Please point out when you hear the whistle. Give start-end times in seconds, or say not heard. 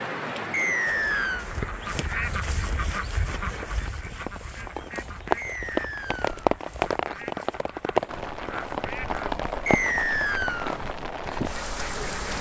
0.5-1.5, 5.3-6.5, 9.7-10.8.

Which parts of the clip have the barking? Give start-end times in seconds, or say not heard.
not heard.